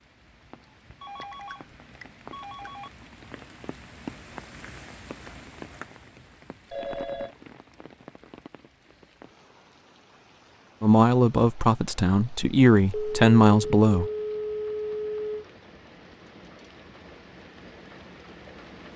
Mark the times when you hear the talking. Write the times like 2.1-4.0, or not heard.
10.8-14.1.